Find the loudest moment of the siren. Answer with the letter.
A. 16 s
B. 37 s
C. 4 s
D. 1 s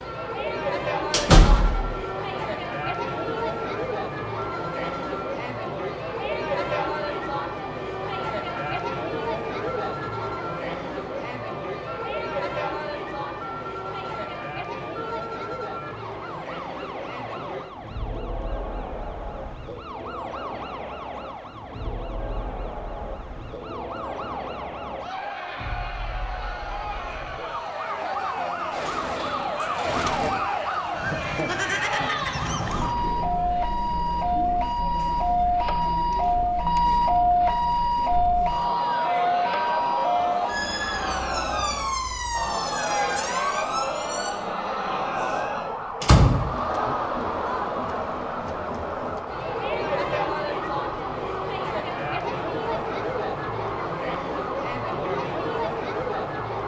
B.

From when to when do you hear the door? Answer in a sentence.
You can hear the door from 1.1 to 1.9 s, from 28.8 to 30.4 s and from 46.0 to 47.0 s.